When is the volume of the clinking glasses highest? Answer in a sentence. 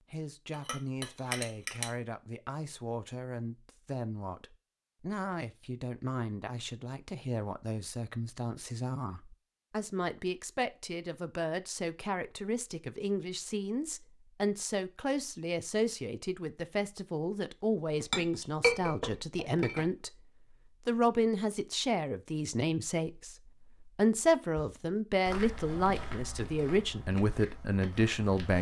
The volume of the clinking glasses peaks at 19 seconds.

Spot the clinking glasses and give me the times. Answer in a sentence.
You can hear the clinking glasses from 0.5 to 1.9 s and from 17.9 to 20.0 s.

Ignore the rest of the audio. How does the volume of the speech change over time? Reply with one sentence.
The loudness of the speech goes up.